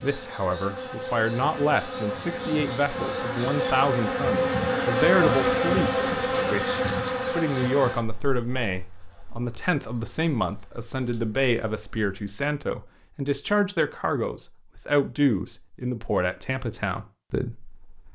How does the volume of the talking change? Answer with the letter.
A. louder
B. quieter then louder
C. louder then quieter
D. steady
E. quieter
D.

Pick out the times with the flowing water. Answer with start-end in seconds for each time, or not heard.
not heard.